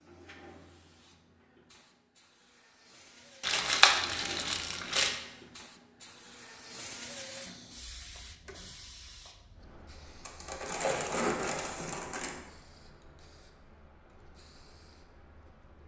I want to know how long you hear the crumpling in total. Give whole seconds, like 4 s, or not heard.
4 s.